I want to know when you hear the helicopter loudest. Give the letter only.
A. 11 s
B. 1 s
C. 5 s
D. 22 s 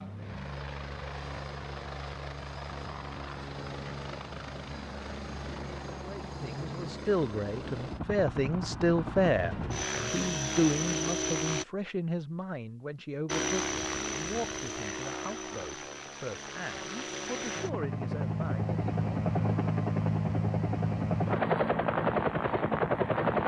D.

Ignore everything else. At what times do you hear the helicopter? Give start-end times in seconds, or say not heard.
0.0-11.7, 13.2-23.4.